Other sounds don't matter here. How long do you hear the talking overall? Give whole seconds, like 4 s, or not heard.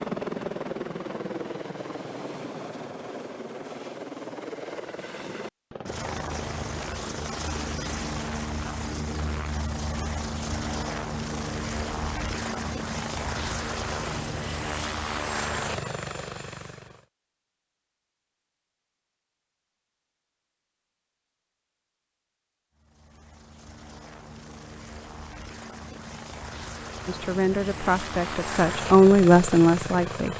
3 s.